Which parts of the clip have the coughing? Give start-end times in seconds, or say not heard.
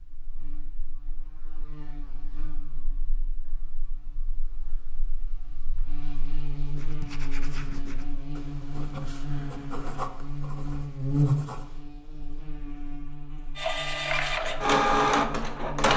not heard.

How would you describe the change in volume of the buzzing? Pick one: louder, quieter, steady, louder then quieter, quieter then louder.
louder then quieter.